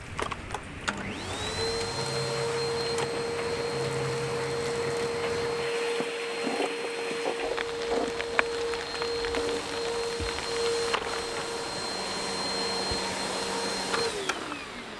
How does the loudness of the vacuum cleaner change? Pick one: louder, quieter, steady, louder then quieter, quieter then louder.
steady.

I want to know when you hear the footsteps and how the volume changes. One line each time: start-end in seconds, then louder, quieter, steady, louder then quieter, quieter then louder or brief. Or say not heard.
not heard.